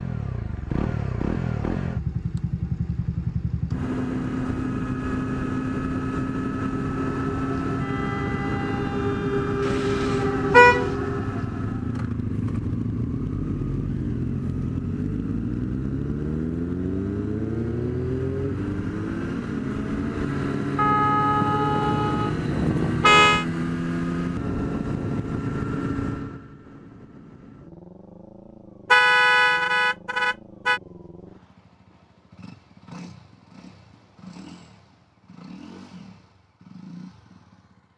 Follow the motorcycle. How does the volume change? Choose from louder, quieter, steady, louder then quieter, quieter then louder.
quieter.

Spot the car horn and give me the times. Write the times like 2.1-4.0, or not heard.
9.7-10.8, 20.8-23.4, 28.9-30.8.